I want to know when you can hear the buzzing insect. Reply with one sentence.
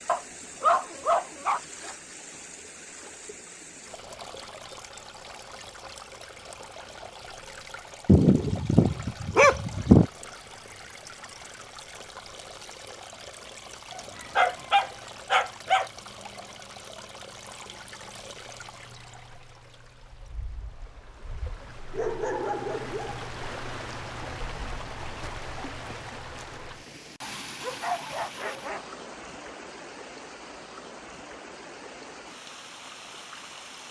You can't hear the buzzing insect here.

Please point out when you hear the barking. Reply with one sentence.
You can hear the barking from 0.1 to 1.6 s, from 8.1 to 10.1 s, from 13.9 to 15.9 s, from 21.9 to 23.4 s and from 27.2 to 28.9 s.